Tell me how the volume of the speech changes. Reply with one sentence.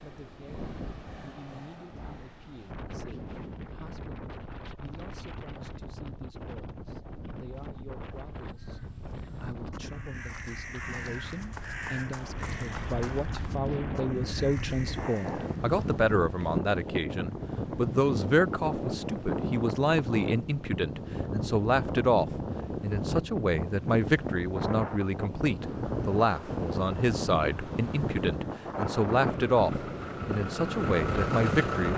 The loudness of the speech goes up.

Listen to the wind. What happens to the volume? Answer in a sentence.
The loudness of the wind goes up.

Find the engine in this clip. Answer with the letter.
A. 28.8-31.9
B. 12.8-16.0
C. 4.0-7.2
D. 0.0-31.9
A.